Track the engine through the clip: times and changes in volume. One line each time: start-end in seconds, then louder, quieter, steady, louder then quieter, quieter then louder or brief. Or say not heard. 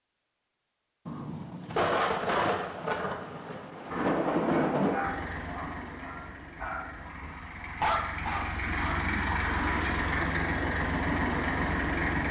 5.0-12.2 louder.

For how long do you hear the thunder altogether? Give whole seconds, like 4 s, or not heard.
4 s.